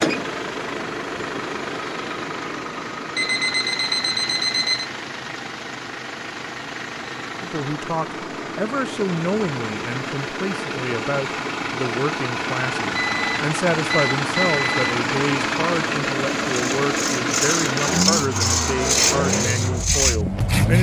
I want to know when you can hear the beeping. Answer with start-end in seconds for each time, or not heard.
3.1-4.8, 12.9-14.9.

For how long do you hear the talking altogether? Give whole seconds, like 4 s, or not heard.
13 s.